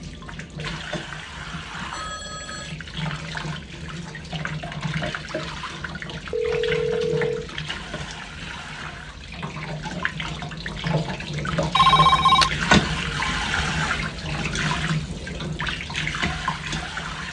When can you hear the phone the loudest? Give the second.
12 s.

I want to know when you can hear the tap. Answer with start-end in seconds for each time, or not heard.
0.0-17.2.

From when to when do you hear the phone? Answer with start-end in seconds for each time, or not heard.
1.9-2.8, 6.3-7.5, 11.8-12.5.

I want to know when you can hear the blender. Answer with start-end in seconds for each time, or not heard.
not heard.